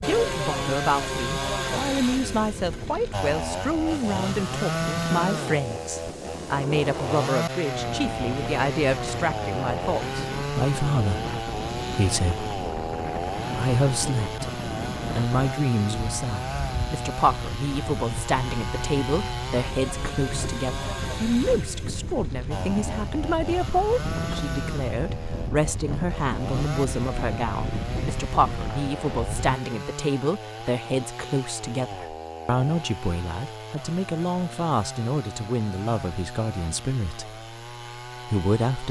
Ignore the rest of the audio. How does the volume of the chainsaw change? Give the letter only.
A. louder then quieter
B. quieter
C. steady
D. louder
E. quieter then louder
B.